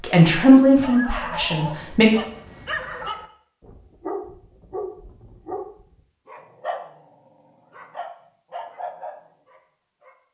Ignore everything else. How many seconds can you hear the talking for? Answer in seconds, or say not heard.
2 s.